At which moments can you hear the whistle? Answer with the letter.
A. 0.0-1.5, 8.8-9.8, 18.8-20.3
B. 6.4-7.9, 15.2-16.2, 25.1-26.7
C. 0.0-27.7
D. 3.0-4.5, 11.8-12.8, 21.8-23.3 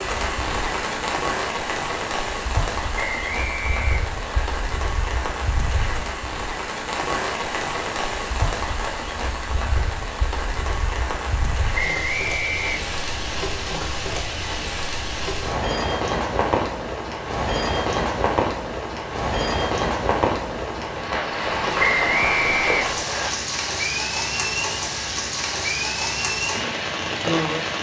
D.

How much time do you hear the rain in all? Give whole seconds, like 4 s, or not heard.
28 s.